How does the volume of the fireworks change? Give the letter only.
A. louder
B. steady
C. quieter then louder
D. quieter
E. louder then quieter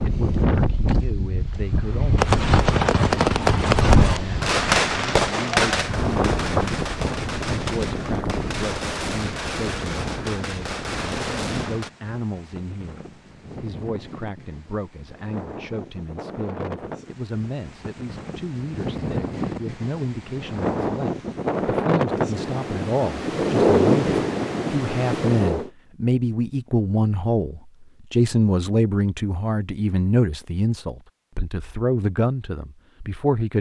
D.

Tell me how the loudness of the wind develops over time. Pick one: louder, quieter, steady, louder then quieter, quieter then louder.
quieter then louder.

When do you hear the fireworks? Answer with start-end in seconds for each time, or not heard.
2.1-11.9.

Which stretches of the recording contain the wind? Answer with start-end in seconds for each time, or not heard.
0.0-25.7.